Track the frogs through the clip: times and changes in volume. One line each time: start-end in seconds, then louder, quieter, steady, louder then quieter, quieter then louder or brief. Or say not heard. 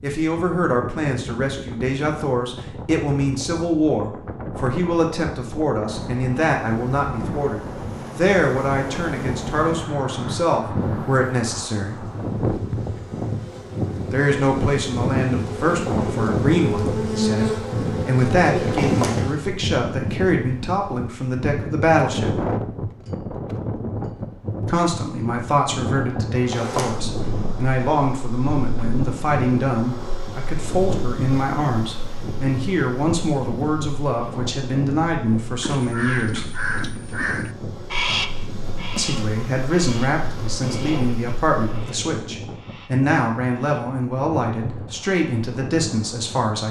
not heard.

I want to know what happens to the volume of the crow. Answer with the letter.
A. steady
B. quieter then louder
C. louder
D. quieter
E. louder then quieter
D.